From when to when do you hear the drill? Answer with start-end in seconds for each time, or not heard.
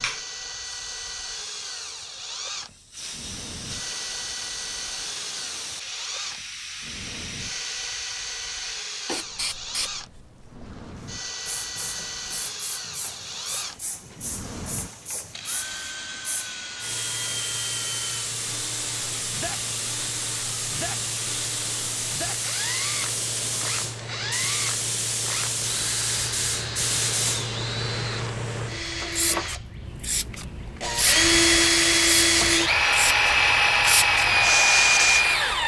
0.0-35.6.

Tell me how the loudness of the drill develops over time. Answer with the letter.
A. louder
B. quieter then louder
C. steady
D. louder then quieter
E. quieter
A.